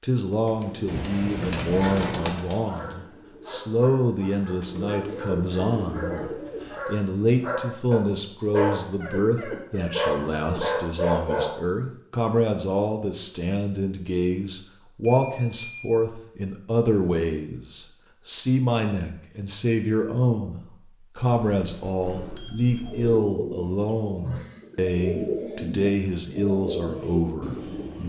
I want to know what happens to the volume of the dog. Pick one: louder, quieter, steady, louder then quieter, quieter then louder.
louder.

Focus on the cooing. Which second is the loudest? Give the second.
25 s.